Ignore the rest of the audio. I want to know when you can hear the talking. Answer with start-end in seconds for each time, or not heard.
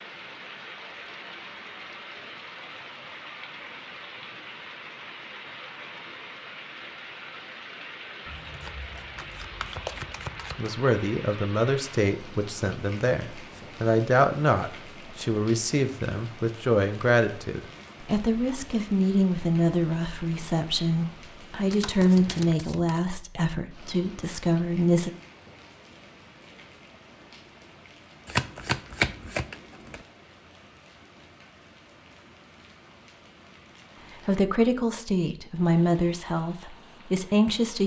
10.6-25.1, 34.2-37.8.